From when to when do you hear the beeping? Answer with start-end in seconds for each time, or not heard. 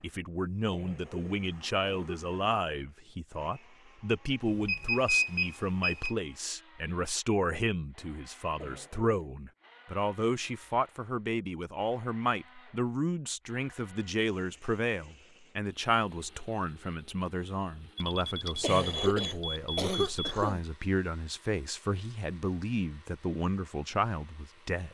4.5-6.2, 17.9-20.4.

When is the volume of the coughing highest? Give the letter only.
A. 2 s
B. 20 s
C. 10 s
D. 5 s
B.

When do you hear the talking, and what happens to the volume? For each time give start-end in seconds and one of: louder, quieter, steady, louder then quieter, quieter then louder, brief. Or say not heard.
0.0-24.8 steady.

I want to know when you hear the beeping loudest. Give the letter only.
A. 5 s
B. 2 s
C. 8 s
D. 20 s
A.